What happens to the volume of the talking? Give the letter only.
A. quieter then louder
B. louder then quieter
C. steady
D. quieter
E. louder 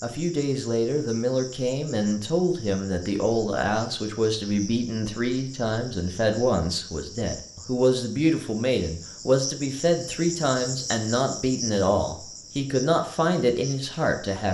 C.